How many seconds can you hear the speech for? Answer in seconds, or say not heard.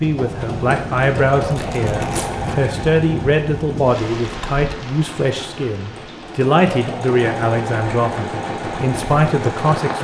10 s.